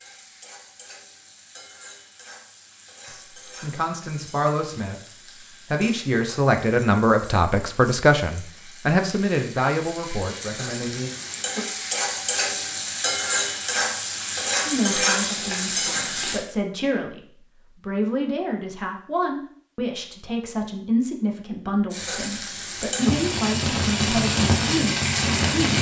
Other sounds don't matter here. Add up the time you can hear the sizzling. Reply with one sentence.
The sizzling can be heard for 20 seconds in total.